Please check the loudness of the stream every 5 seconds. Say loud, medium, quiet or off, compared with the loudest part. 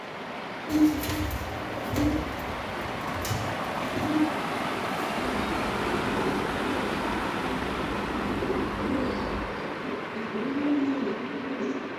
loud, loud, medium.